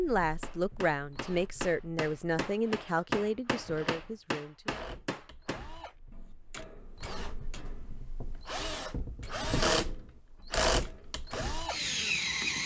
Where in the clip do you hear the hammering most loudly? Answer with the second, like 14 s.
3 s.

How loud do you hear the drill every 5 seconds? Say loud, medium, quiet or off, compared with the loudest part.
quiet, medium, loud.